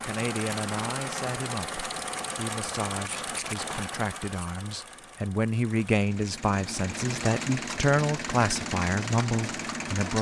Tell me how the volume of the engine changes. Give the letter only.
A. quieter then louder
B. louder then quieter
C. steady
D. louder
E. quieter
A.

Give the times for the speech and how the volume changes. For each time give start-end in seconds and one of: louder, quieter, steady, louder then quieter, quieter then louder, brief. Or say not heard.
0.1-10.1 louder.